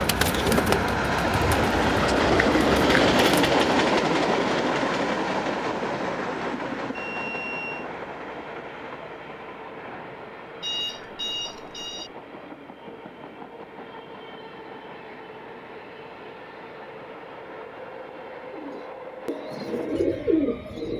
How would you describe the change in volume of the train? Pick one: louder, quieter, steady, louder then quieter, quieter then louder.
quieter.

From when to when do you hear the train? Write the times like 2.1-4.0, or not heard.
0.0-20.9.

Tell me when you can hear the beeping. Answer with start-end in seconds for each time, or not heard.
7.0-7.8, 10.6-12.1.